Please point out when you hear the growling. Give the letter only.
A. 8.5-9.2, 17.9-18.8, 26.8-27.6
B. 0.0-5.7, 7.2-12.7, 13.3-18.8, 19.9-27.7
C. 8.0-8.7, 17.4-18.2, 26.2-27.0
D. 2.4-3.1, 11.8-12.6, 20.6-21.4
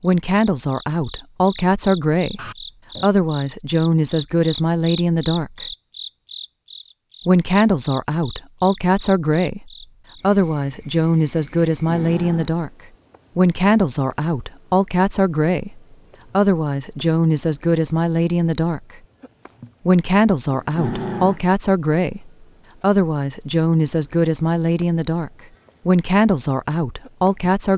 D.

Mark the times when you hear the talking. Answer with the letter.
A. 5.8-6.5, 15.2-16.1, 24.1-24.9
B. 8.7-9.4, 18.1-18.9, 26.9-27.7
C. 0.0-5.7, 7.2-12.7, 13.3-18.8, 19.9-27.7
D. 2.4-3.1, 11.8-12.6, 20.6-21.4
C.